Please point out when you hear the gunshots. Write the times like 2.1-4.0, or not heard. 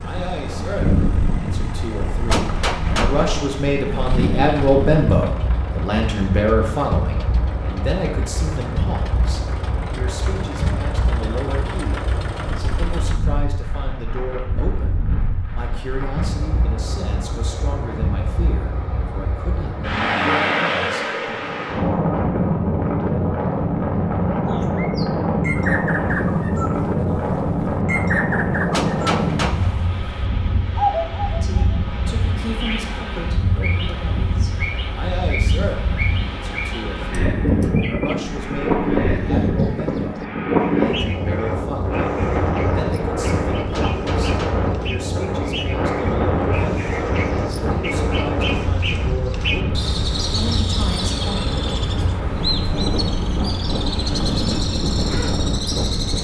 2.2-3.4, 28.7-30.0, 43.7-44.8.